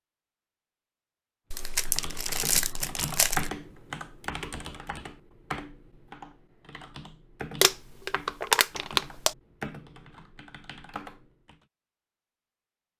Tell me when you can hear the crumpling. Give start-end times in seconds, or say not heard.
1.5-3.5, 7.6-9.3.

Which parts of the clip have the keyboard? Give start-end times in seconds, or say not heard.
1.6-11.6.